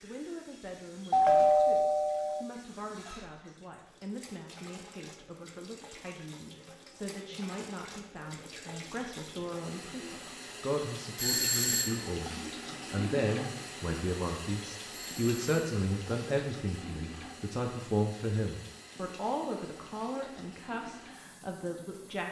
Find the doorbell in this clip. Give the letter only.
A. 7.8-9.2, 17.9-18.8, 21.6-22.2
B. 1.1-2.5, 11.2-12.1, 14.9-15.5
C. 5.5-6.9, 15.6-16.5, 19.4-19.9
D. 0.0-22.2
B.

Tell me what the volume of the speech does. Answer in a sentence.
The volume of the speech goes up.